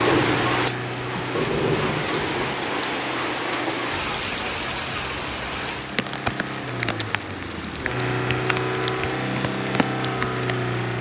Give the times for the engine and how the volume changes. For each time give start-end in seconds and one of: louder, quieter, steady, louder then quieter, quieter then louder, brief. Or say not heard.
0.0-10.9 quieter then louder.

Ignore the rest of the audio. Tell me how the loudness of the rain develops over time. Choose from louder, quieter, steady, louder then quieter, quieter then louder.
quieter.